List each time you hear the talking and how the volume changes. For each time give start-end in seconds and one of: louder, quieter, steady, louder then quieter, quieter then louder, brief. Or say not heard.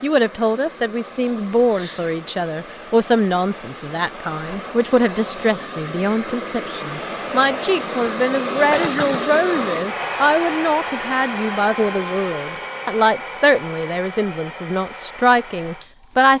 0.0-16.3 steady.